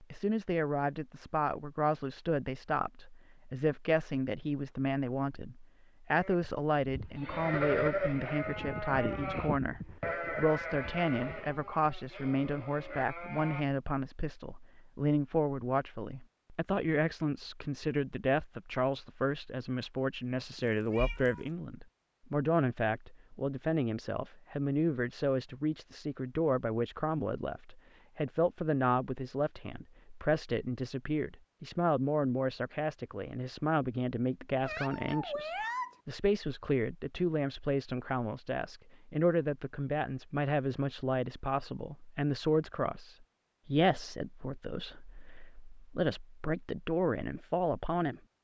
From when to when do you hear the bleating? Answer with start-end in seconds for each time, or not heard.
6.2-13.7.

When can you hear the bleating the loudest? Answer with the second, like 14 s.
8 s.